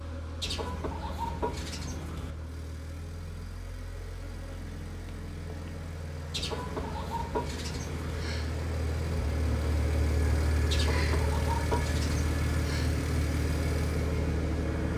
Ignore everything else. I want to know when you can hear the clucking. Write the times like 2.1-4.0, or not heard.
0.4-2.4, 6.3-8.2, 10.7-12.3.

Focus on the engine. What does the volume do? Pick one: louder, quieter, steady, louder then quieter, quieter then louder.
louder.